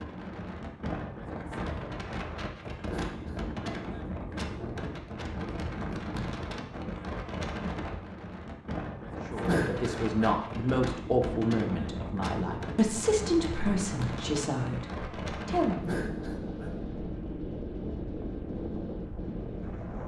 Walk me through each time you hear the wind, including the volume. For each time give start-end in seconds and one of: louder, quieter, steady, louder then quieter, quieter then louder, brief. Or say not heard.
0.0-20.0 steady.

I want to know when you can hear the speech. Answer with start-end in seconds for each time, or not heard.
9.3-15.8.